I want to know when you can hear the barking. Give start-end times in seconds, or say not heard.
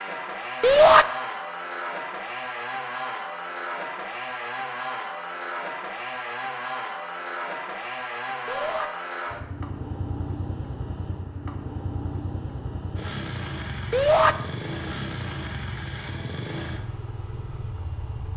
not heard.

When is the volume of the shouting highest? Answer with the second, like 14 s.
1 s.